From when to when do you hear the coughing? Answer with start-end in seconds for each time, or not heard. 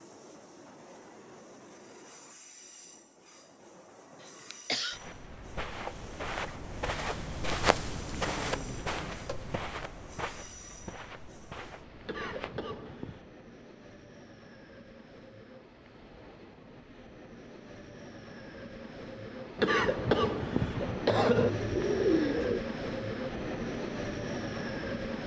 4.2-5.0, 12.1-13.3, 19.6-21.5.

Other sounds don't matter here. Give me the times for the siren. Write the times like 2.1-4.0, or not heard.
not heard.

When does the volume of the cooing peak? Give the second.
22 s.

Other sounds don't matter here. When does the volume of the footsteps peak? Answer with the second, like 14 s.
8 s.